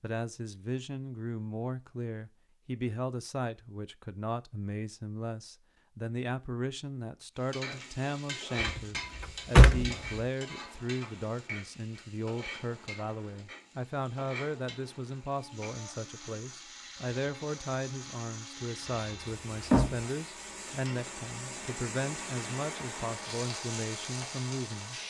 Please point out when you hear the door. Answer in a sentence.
The door can be heard from 8.6 to 9.9 s and from 18.9 to 20.1 s.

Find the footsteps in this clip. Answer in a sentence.
You can't hear the footsteps here.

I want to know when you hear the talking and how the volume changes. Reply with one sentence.
You can hear the talking from 0.0 to 25.0 s, at a steady volume.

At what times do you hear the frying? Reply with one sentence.
You can hear the frying from 7.4 to 25.0 s.